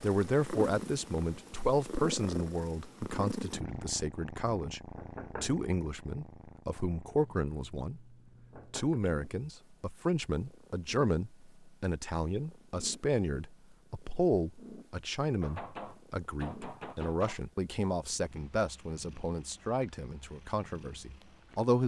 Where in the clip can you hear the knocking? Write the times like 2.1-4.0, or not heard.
5.0-5.6, 8.5-9.0, 15.4-17.4.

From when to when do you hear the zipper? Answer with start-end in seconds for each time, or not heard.
not heard.